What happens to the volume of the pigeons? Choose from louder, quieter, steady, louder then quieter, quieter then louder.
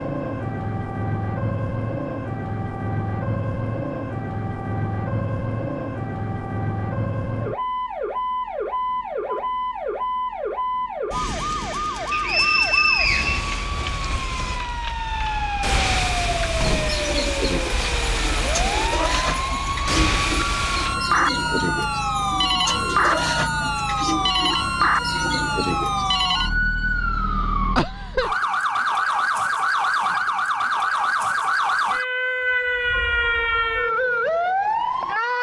steady.